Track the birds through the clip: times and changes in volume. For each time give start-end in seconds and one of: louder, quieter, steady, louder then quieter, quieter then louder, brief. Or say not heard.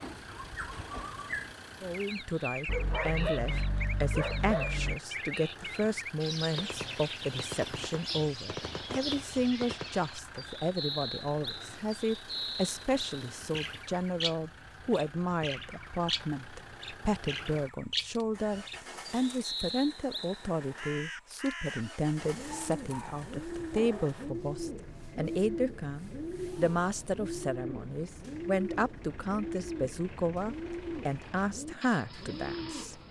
0.0-33.0 steady.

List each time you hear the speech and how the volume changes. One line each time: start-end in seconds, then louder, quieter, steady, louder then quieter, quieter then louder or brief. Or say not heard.
1.8-33.0 steady.